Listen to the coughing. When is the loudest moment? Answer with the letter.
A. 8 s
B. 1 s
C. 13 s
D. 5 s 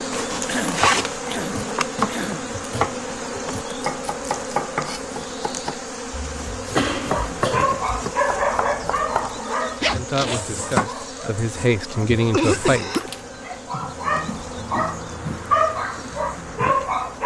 C.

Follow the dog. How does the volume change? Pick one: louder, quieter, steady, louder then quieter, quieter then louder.
quieter then louder.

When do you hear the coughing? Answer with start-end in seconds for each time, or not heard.
0.5-2.5, 6.8-7.7, 12.3-13.1.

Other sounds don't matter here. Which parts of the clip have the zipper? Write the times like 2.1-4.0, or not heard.
0.1-1.2, 9.8-10.4.